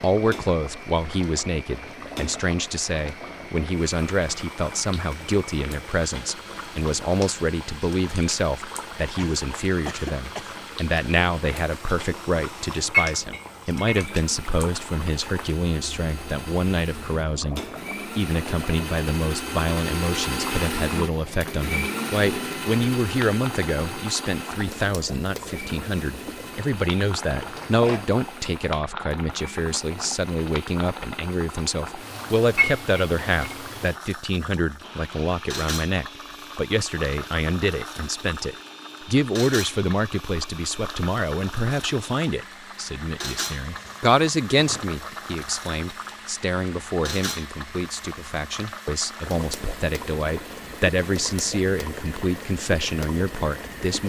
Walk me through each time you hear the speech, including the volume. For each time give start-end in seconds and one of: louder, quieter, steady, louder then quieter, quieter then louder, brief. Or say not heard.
0.0-54.0 steady.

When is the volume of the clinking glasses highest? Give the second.
13 s.